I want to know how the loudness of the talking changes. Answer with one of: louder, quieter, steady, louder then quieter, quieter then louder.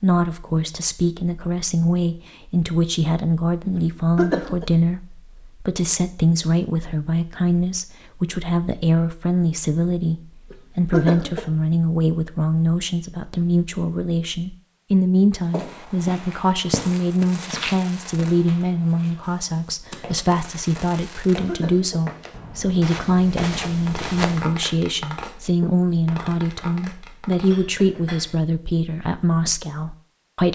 steady.